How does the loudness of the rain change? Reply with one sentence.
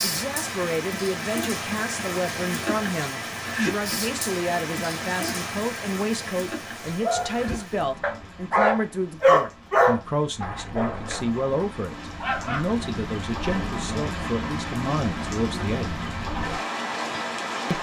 The volume of the rain goes down, then up.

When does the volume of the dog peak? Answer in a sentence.
The loudest moment of the dog is at 9 seconds.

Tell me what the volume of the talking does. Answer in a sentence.
The volume of the talking stays about the same.